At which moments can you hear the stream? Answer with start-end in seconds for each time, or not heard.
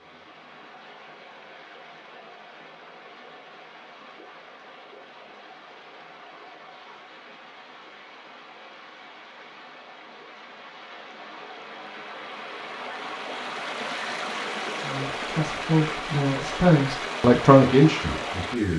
0.0-18.7.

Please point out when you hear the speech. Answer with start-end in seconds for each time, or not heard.
14.8-18.7.